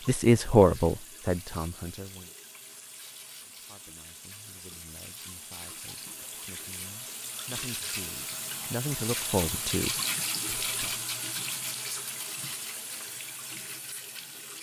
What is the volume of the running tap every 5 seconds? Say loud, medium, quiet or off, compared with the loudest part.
quiet, loud, loud.